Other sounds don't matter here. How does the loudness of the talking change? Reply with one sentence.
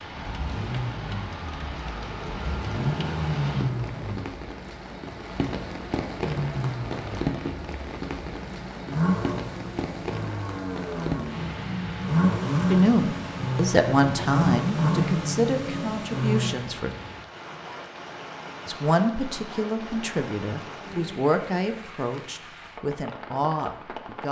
The loudness of the talking goes down.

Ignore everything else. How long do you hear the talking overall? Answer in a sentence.
You can hear the talking for 10 seconds altogether.